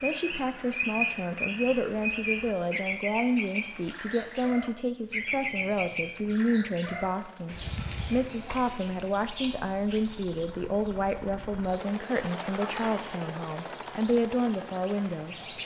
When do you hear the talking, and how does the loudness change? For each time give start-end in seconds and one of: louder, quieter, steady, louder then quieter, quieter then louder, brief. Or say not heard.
0.0-15.4 steady.